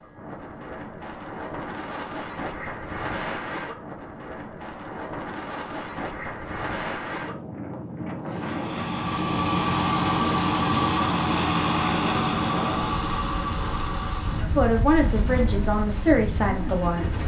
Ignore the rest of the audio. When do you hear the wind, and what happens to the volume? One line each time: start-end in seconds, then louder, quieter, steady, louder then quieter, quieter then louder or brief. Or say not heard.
0.0-17.1 steady.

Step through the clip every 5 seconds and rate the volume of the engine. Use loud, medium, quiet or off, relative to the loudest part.
off, loud, loud, medium.